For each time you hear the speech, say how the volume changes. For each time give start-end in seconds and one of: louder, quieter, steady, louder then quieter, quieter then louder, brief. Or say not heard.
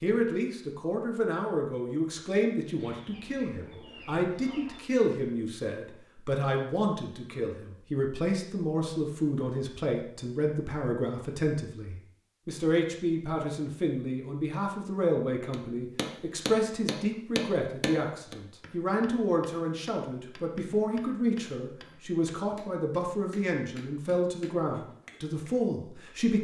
0.0-26.3 steady.